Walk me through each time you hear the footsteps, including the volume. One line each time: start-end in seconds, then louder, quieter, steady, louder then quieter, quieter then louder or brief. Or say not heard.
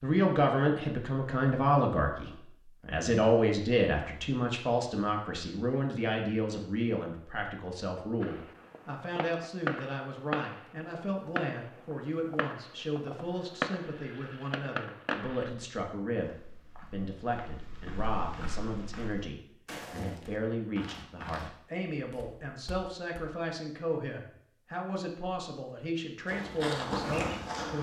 16.1-23.2 louder then quieter
26.2-27.7 brief.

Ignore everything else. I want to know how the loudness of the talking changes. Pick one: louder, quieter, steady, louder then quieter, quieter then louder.
quieter.